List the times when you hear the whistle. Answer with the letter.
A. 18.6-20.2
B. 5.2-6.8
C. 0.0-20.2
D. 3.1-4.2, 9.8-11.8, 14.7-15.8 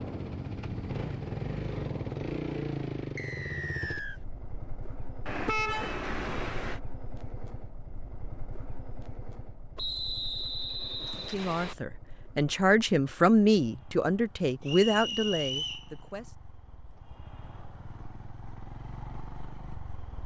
D.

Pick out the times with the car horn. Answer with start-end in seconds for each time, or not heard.
5.2-6.8.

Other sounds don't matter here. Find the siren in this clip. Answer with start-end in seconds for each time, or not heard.
not heard.